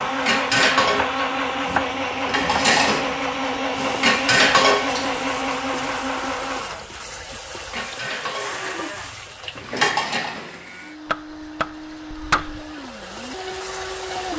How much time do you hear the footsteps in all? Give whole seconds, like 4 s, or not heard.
not heard.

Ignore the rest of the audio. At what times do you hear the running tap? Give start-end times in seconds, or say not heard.
3.7-14.3.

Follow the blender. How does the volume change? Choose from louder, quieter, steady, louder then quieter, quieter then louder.
quieter.